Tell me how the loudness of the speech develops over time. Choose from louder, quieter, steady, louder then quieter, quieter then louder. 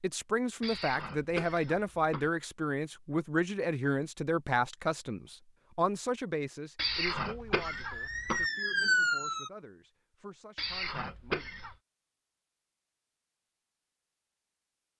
quieter.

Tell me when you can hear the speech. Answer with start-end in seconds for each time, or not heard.
0.0-11.5.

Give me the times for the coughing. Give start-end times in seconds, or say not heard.
0.6-2.3, 6.8-8.5, 10.6-11.8.